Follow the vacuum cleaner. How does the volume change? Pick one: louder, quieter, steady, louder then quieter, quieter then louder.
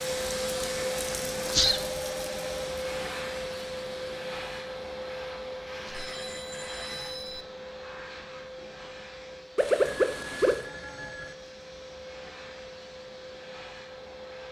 quieter.